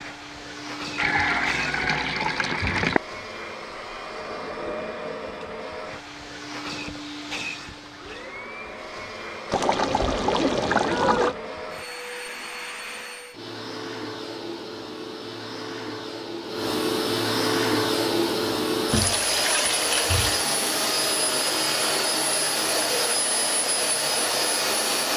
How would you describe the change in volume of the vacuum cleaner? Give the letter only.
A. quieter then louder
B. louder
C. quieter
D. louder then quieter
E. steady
B.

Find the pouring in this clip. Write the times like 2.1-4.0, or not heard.
0.9-3.0, 9.4-11.3, 18.9-20.4.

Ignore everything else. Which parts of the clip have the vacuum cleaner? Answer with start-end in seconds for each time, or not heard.
0.0-25.1.